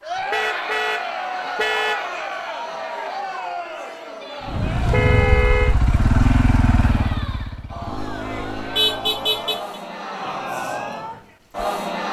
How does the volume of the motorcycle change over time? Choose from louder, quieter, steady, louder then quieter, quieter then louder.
quieter.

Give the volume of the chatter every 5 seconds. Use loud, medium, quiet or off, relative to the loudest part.
loud, medium, loud.